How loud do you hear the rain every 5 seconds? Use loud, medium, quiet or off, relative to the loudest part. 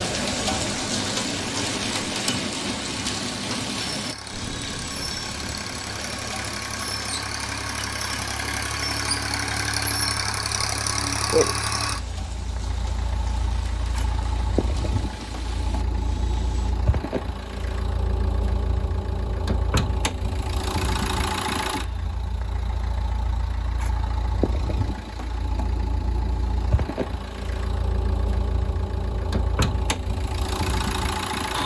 loud, medium, quiet, quiet, off, off, off.